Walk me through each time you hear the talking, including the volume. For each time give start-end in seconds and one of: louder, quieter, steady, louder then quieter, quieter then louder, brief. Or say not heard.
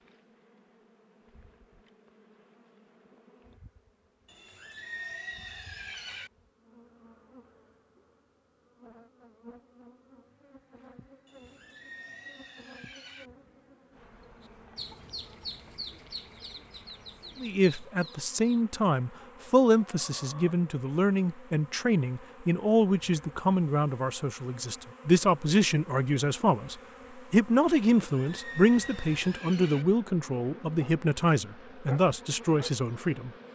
17.4-33.3 steady.